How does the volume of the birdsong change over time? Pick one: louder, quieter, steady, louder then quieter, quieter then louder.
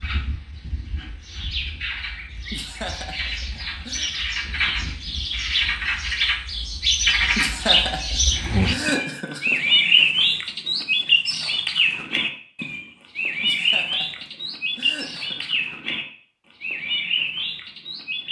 louder then quieter.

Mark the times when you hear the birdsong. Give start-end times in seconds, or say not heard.
0.0-18.2.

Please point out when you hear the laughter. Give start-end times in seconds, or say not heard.
2.4-4.1, 7.2-9.6, 13.4-15.7.